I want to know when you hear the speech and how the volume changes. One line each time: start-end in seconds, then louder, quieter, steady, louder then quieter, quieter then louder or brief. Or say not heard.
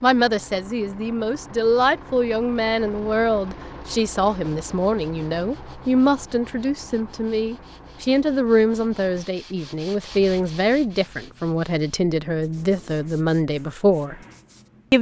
0.0-14.2 steady.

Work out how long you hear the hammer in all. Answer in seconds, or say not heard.
not heard.